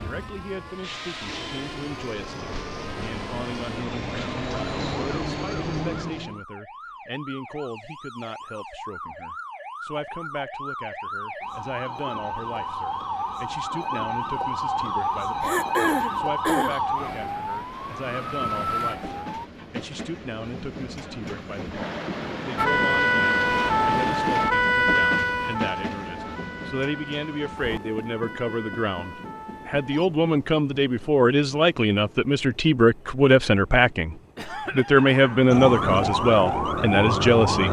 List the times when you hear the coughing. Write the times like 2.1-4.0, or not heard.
15.4-16.8, 34.4-35.5.